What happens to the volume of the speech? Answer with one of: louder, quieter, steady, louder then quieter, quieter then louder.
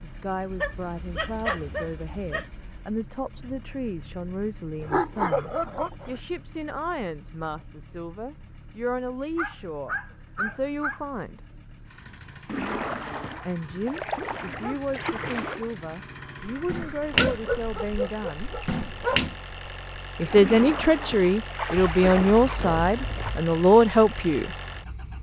louder.